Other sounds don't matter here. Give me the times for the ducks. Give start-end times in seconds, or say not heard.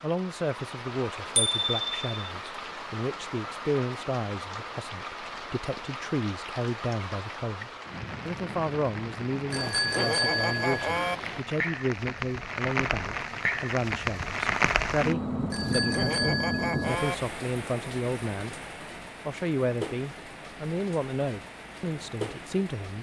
not heard.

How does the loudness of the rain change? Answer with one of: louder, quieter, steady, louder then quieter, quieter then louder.
louder then quieter.